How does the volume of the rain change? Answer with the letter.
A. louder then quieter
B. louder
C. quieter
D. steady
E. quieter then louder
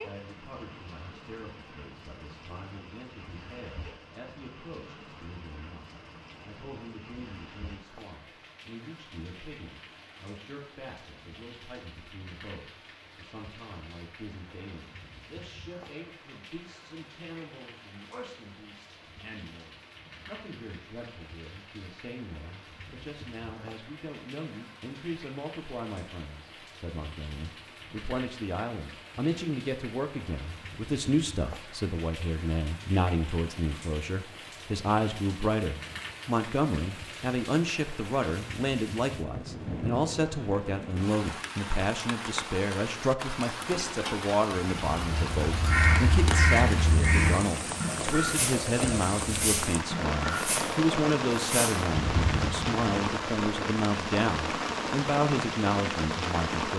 B.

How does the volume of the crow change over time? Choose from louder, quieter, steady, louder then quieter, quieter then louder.
quieter.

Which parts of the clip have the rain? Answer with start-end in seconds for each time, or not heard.
0.0-56.7.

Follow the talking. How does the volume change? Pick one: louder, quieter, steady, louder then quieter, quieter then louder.
louder.